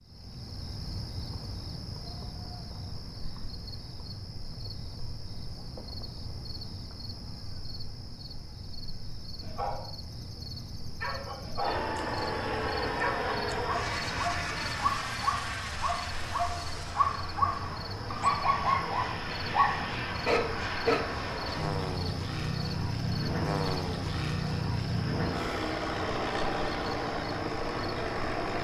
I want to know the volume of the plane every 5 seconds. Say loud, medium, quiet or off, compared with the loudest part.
off, off, loud, medium, loud, loud.